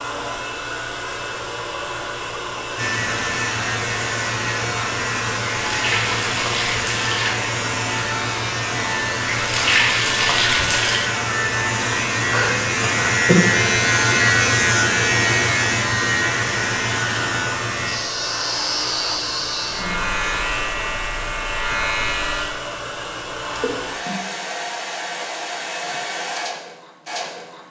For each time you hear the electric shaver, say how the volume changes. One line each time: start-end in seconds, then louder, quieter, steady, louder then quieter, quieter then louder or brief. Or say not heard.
2.8-22.4 louder then quieter.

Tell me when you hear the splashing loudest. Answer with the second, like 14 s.
10 s.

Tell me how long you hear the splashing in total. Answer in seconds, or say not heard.
4 s.